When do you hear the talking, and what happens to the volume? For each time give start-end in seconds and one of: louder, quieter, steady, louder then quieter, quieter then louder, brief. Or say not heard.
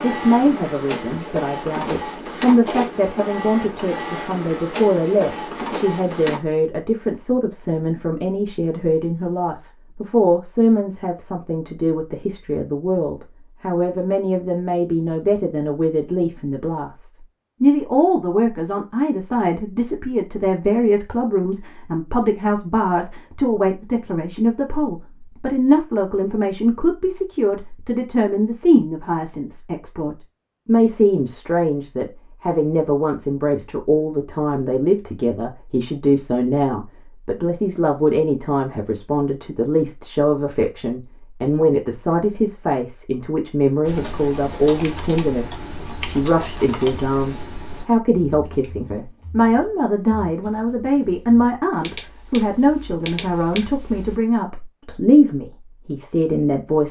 0.0-56.8 steady.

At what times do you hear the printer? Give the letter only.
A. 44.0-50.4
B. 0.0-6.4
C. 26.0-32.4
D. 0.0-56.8
B.